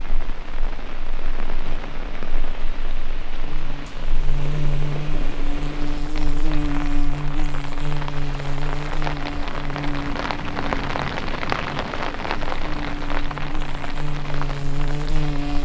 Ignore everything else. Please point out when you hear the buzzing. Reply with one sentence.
You can hear the buzzing from 0.0 to 15.6 s.